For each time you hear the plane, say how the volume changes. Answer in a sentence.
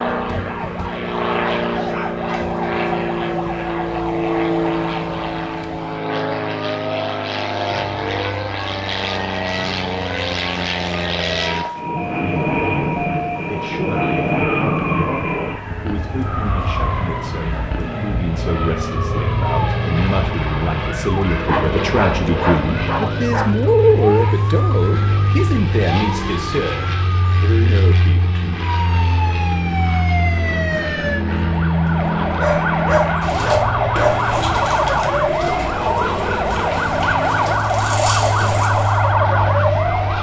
You can hear the plane from 0.0 to 40.1 s, at a steady volume.